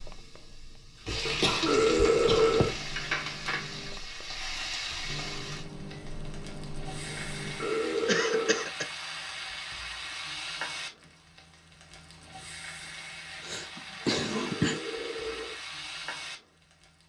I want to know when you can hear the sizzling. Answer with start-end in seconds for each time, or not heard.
0.0-17.0.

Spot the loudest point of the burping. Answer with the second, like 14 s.
2 s.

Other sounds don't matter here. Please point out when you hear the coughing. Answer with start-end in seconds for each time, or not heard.
1.2-2.8, 8.1-8.8, 13.4-14.8.